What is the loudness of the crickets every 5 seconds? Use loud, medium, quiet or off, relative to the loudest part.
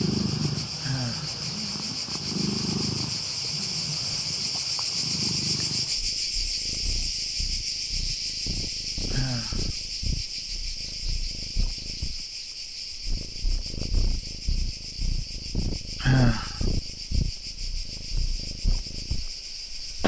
loud, loud, medium, medium.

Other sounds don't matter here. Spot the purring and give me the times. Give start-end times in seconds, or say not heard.
0.0-20.0.